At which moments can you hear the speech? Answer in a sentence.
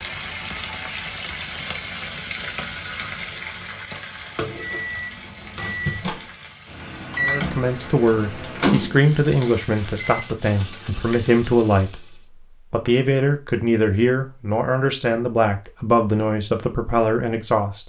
You can hear the speech from 7.2 to 17.8 s.